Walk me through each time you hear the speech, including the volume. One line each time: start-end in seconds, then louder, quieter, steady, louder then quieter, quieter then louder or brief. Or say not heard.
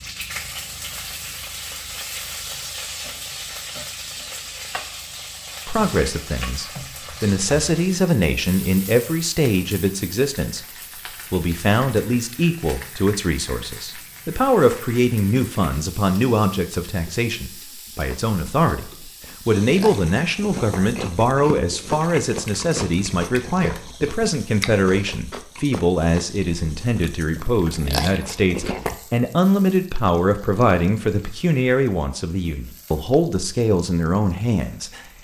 5.7-35.0 steady.